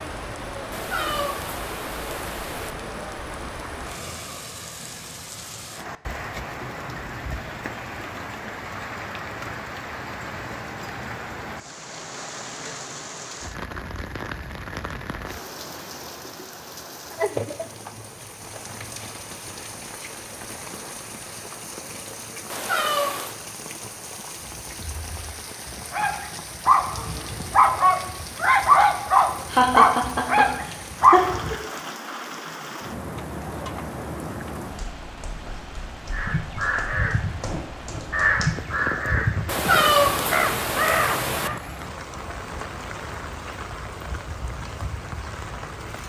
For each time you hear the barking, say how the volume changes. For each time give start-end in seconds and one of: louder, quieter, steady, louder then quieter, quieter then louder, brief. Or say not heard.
24.4-31.6 louder.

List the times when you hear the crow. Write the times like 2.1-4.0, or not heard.
36.1-41.6.